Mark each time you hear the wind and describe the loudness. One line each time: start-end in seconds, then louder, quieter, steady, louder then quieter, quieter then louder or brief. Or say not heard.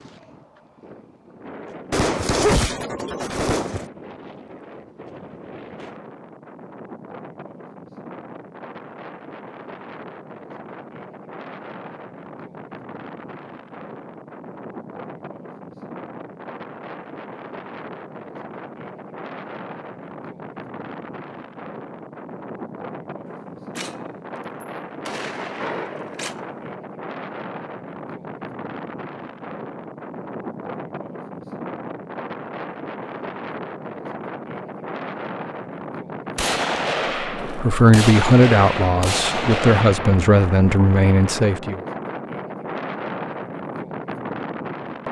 0.0-45.0 louder.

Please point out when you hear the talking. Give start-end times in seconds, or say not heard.
37.5-41.8.